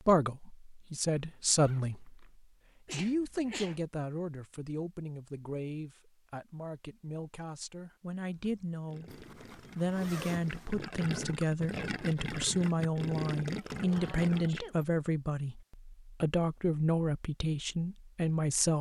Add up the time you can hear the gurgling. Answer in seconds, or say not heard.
6 s.